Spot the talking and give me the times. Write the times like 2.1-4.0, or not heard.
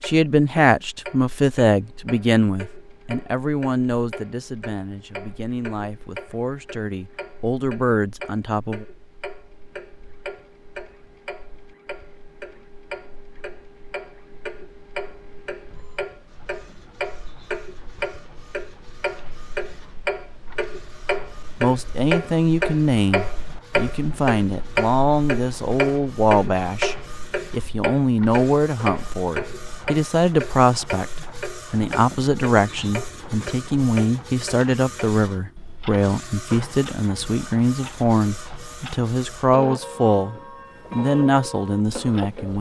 0.1-8.8, 21.6-42.5.